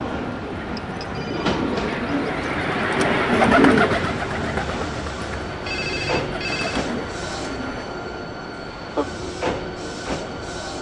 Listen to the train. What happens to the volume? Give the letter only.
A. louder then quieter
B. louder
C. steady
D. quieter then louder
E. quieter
C.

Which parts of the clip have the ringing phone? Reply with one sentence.
The ringing phone can be heard from 0.8 to 1.5 s and from 5.7 to 6.8 s.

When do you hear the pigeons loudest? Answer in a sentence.
The volume of the pigeons peaks at 4 seconds.